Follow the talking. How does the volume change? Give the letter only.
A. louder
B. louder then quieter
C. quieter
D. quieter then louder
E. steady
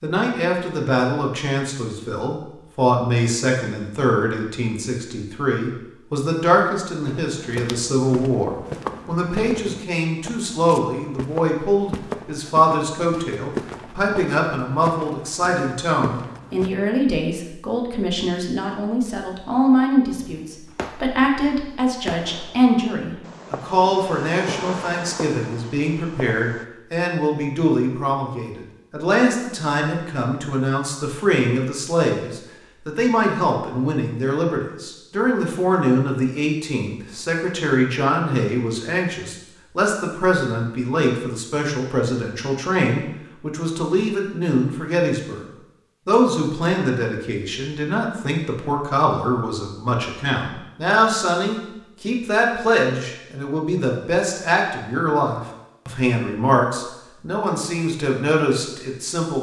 E.